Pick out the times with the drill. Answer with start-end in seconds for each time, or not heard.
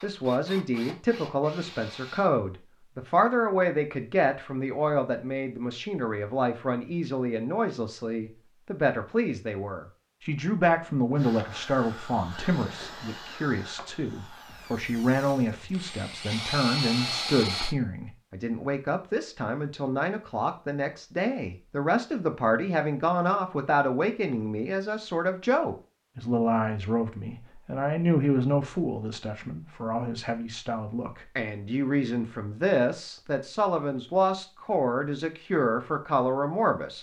0.0-2.3, 11.2-17.8.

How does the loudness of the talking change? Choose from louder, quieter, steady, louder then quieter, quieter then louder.
steady.